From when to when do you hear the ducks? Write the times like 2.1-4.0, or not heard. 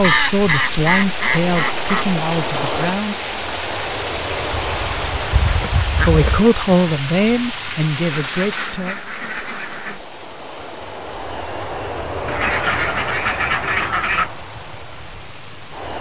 0.0-2.0, 4.5-6.4, 8.0-10.0, 12.2-14.3.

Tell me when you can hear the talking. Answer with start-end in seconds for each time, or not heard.
0.0-3.1, 6.0-9.0.